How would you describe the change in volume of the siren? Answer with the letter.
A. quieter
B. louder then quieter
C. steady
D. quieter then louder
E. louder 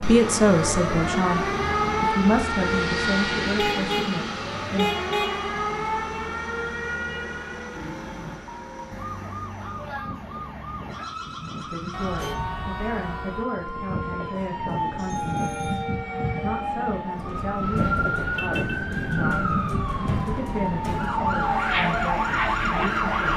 D.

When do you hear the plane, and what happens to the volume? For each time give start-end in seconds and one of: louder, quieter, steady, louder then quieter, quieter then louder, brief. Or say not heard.
0.0-23.3 quieter then louder.